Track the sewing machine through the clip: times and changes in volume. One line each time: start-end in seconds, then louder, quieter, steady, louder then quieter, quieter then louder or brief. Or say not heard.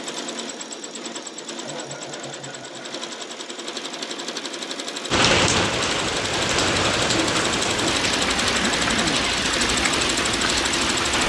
0.0-11.2 louder.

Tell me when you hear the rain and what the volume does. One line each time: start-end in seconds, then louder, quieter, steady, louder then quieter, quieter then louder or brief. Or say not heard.
5.1-11.2 steady.